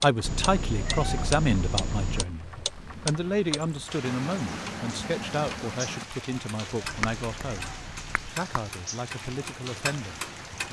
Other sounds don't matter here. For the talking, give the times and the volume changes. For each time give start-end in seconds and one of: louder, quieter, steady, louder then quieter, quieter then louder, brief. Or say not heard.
0.0-10.6 quieter.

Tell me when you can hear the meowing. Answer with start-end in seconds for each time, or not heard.
0.2-2.2, 6.8-8.3.